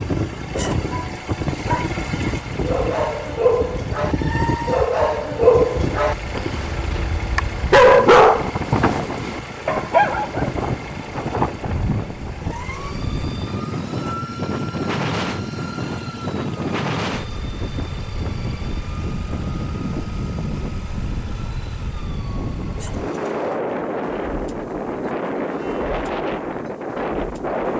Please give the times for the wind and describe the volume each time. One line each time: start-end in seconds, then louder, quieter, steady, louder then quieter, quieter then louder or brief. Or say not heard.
0.0-27.7 steady.